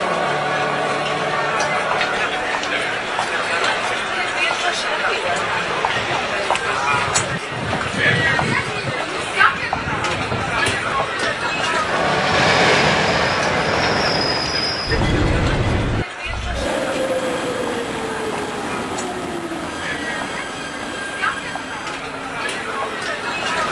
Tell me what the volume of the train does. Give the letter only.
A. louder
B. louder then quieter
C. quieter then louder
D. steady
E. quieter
B.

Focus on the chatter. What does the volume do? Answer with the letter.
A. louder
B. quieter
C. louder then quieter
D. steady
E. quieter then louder
B.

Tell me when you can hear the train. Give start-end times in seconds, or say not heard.
5.2-23.6.